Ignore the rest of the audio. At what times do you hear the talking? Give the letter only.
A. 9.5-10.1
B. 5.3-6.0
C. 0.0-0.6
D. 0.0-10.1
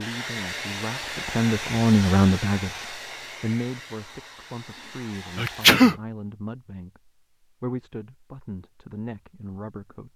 D.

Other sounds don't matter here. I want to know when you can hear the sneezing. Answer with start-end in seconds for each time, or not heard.
5.3-6.0.